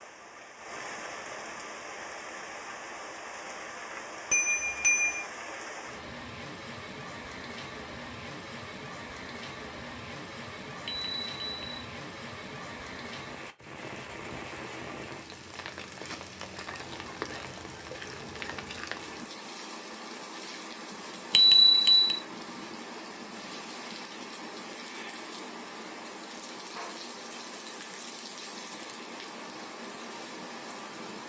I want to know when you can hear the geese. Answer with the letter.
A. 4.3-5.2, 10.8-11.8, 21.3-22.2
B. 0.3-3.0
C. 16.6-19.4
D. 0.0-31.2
C.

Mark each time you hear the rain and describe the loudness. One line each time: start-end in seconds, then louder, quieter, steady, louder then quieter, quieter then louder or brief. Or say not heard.
0.0-31.2 steady.